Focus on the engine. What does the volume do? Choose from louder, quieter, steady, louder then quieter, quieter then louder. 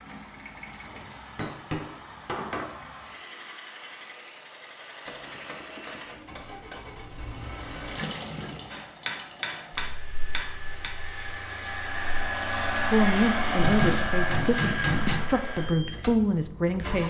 louder.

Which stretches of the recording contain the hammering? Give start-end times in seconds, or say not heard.
0.8-2.6, 5.0-6.8, 8.7-10.9, 13.6-15.2.